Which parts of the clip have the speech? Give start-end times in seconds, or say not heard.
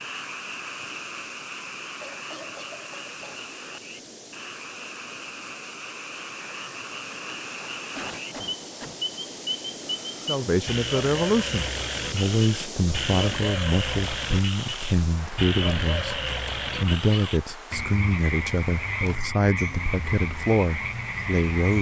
10.2-21.7.